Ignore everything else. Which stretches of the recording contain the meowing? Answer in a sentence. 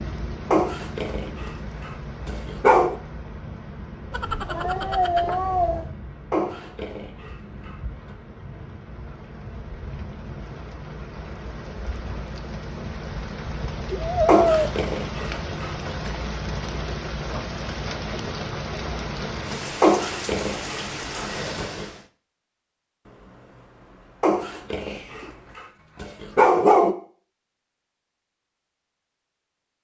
You can hear the meowing from 4.1 to 5.9 s, from 13.9 to 14.7 s and from 23.1 to 25.6 s.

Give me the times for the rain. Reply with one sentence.
The rain can be heard from 0.0 to 22.1 s.